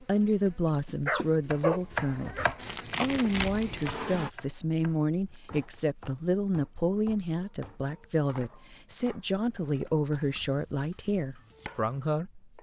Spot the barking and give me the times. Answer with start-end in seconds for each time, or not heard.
1.1-2.5.